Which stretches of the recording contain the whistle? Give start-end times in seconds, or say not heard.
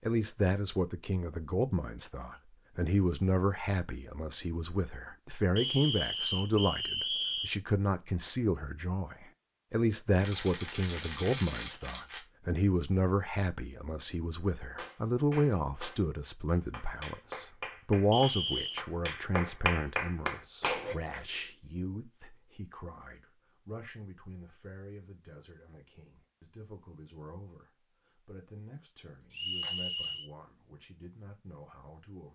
5.5-7.5, 18.1-18.9, 29.3-30.3.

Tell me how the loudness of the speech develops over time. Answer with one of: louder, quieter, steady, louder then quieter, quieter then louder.
quieter.